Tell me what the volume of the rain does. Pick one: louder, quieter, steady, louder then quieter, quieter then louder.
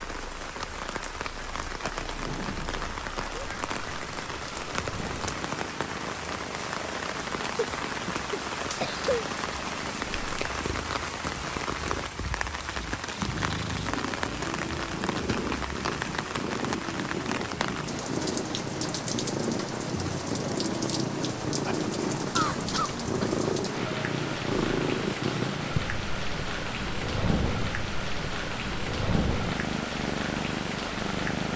steady.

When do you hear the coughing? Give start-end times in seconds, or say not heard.
7.5-9.2, 22.4-23.4.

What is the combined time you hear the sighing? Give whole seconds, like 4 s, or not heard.
2 s.